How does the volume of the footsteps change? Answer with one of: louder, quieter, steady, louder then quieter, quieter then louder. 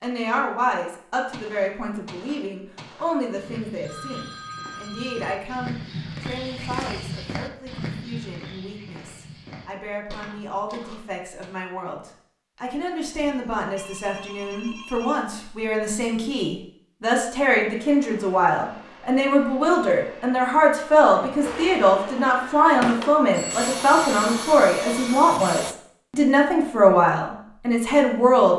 louder then quieter.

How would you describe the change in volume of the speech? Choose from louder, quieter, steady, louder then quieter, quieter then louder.
quieter then louder.